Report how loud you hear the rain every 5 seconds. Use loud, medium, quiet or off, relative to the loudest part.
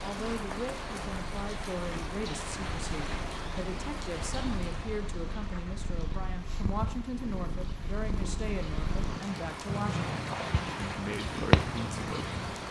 loud, medium, loud.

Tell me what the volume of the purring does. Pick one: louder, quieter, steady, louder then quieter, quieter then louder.
louder.